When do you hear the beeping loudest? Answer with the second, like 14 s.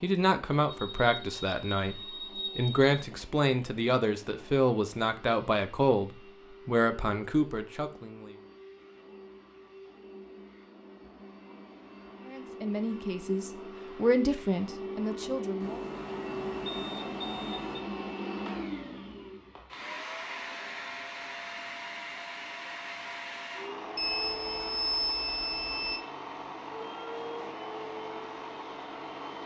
25 s.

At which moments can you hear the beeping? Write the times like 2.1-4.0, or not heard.
0.7-2.8, 15.6-17.8, 23.9-26.0.